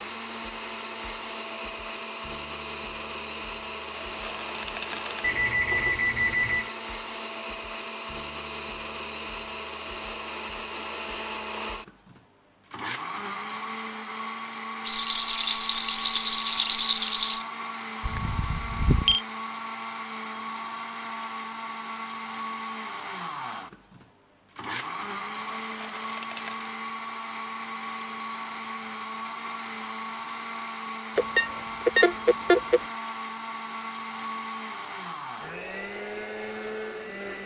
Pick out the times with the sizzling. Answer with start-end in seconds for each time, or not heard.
not heard.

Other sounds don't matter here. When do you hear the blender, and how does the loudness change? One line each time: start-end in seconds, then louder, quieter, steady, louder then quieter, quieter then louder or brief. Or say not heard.
0.0-37.4 steady.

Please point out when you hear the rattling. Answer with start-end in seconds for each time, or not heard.
3.9-5.3, 14.8-17.4, 25.4-26.7.